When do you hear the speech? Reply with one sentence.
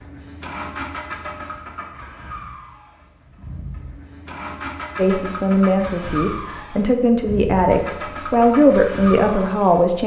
The speech can be heard from 5.0 to 10.0 s.